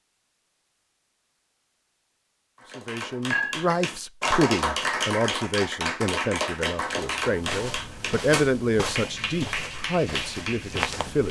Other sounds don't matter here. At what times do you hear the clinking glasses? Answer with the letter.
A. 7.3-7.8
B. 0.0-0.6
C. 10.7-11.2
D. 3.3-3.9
D.